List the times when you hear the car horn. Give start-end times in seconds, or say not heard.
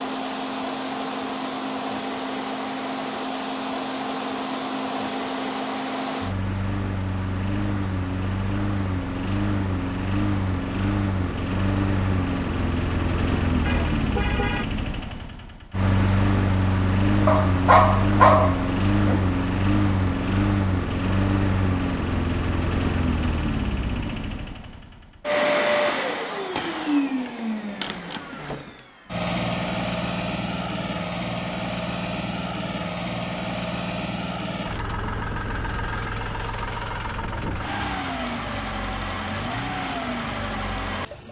13.7-14.7.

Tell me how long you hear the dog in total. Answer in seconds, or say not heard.
2 s.